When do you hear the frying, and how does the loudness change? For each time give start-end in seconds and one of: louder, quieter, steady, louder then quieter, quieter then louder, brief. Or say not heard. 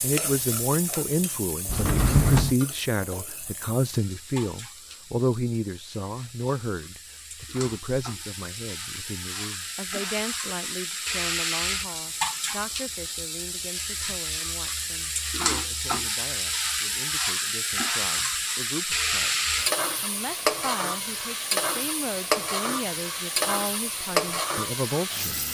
0.0-25.4 louder.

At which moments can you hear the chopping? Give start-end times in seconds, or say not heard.
not heard.